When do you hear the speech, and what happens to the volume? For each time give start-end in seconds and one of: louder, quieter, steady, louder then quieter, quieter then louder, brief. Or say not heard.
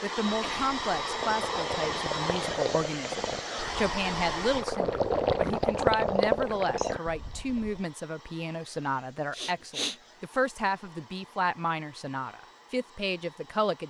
0.0-13.8 steady.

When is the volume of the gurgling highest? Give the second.
6 s.